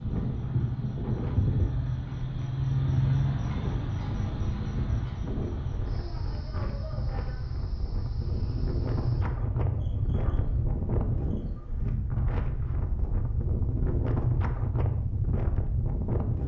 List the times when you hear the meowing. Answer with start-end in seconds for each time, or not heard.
not heard.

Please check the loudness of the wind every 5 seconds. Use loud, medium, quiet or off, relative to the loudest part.
medium, loud, loud, loud.